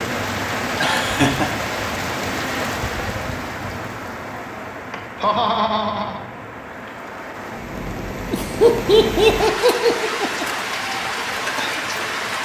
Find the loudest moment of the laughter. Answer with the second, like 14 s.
9 s.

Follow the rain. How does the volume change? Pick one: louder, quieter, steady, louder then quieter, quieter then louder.
quieter then louder.